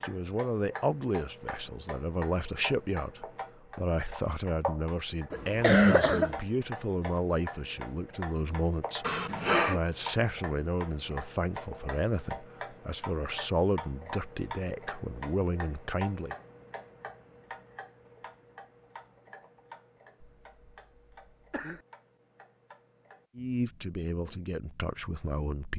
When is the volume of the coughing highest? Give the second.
6 s.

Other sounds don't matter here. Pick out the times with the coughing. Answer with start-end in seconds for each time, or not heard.
5.3-6.4, 9.0-9.8, 20.2-21.9.